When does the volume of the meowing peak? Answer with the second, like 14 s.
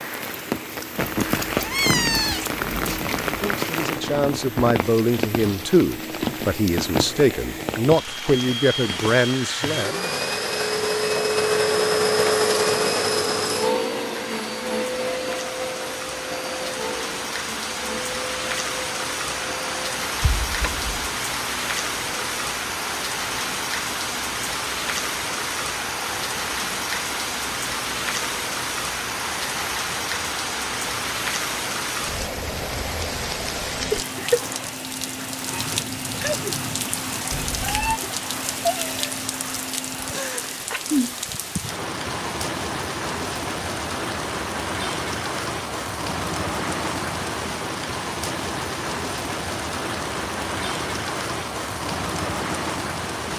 2 s.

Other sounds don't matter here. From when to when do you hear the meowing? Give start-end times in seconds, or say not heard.
0.9-3.4, 20.2-20.9, 37.3-38.0.